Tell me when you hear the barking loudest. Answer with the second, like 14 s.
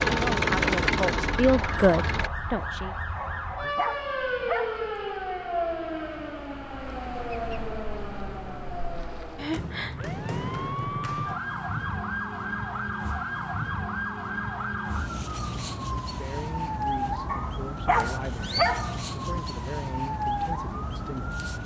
19 s.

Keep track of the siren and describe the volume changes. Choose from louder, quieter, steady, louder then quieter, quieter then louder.
steady.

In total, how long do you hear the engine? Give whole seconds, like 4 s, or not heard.
2 s.